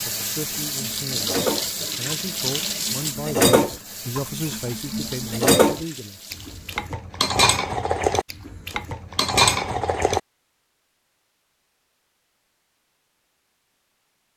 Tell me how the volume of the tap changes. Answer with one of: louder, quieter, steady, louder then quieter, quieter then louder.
quieter.